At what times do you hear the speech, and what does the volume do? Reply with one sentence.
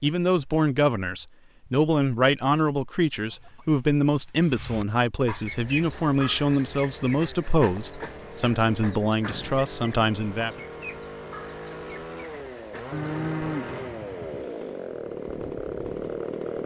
You can hear the speech from 0.0 to 10.6 s, at a steady volume.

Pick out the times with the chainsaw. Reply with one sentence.
The chainsaw can be heard from 5.5 to 16.6 s.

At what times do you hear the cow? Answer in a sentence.
The cow can be heard from 12.9 to 14.4 s.